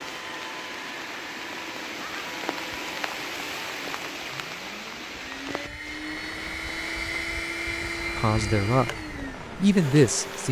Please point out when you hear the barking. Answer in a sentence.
The barking can't be heard in this clip.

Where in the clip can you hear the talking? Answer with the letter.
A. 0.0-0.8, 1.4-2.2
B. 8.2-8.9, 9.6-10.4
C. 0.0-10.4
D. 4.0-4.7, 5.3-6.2
B.